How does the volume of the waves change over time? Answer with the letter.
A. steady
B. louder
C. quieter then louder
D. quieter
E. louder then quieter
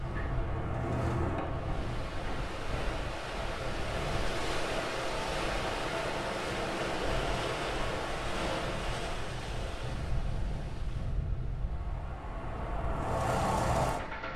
E.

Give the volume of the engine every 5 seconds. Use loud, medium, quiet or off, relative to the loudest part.
loud, off, loud.